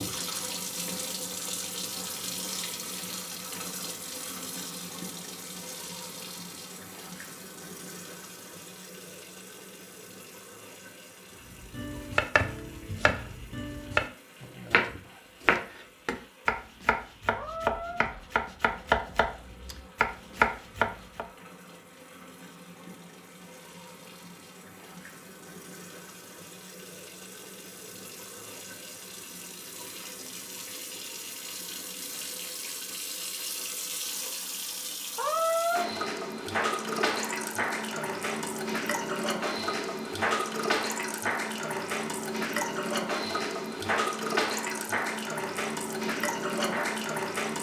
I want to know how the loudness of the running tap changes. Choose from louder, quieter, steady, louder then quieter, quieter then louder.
quieter then louder.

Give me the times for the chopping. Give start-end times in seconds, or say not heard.
11.7-21.2.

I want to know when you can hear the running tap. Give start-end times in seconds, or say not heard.
0.0-47.5.